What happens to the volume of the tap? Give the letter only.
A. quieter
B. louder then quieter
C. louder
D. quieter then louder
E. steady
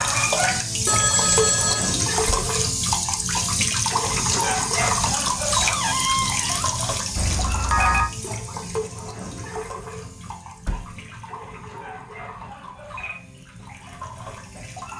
A.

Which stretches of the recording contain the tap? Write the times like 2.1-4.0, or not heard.
0.0-14.9.